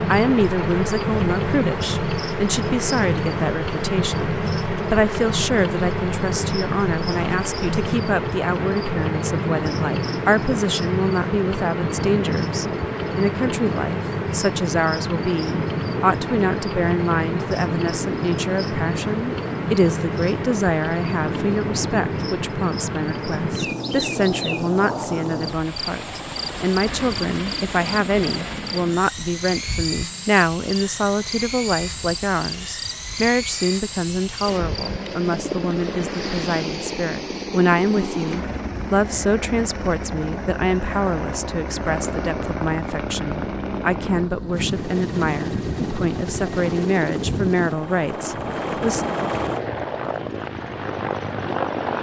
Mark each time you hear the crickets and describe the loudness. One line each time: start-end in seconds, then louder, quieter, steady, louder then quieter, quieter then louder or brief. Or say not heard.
0.0-35.0 quieter.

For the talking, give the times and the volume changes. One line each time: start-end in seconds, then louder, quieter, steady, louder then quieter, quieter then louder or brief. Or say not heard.
0.1-49.0 steady.